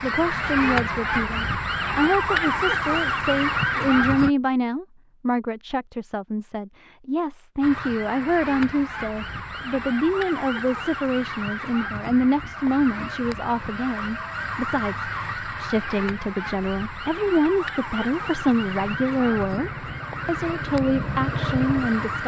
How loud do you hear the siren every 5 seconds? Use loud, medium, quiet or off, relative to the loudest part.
loud, medium, medium, medium, medium.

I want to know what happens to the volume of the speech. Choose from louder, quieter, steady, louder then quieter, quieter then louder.
steady.